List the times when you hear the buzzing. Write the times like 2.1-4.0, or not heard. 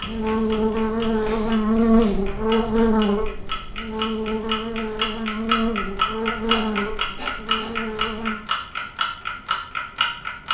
0.0-8.4.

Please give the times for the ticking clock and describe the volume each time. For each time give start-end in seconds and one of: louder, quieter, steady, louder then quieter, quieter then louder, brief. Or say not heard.
0.0-10.4 louder.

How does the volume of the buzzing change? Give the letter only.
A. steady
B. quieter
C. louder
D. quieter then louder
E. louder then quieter
B.